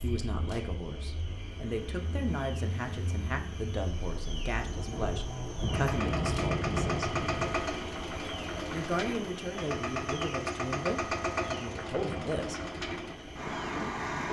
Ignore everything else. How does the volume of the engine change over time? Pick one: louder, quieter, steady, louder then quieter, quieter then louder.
louder.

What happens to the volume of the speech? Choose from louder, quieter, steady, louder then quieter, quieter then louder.
steady.